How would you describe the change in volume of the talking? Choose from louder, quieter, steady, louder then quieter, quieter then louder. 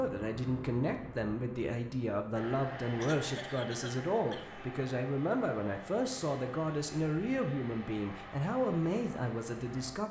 steady.